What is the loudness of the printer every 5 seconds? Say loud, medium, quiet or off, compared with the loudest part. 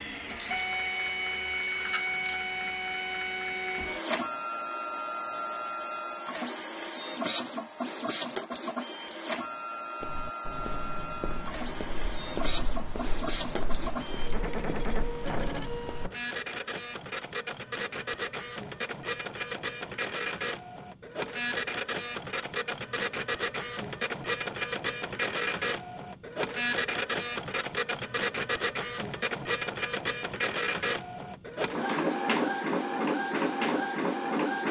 loud, medium, medium, medium, loud, loud, loud.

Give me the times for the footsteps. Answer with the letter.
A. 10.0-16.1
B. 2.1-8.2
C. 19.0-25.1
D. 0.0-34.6
A.